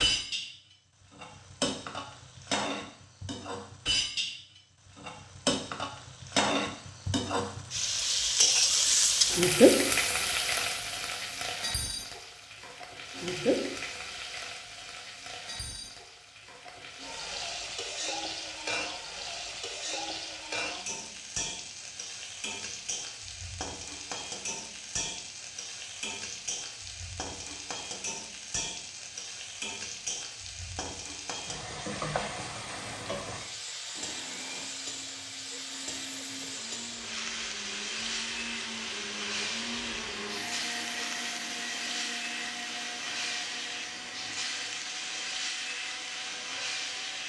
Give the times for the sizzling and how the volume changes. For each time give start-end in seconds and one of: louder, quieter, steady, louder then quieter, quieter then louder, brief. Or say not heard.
0.0-47.2 quieter.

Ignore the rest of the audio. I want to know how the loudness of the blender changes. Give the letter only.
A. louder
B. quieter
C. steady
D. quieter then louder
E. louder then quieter
E.